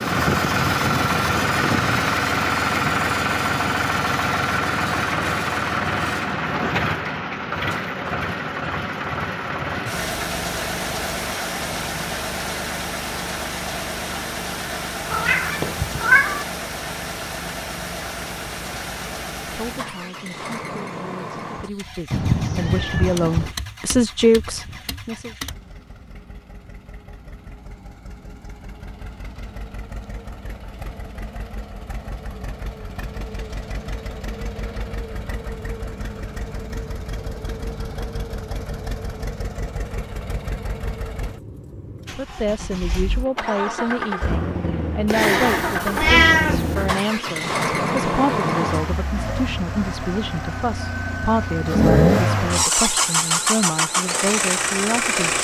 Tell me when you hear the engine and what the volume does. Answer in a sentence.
You can hear the engine from 0.0 to 55.3 s, getting quieter then louder.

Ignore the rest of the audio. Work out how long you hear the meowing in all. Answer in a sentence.
The meowing can be heard for 5 seconds in total.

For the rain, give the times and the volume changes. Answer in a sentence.
The rain can't be heard in this clip.